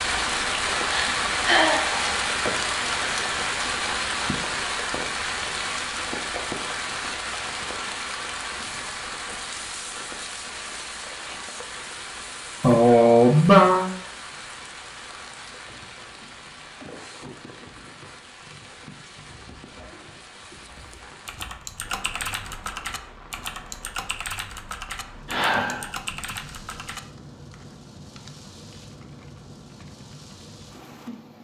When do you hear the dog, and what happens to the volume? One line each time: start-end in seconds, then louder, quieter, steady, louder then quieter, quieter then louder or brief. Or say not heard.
not heard.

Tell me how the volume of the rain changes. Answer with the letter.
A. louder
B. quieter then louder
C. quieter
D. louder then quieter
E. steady
C.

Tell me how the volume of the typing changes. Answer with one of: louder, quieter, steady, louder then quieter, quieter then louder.
quieter.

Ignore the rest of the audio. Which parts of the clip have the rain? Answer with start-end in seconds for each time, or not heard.
0.0-31.3.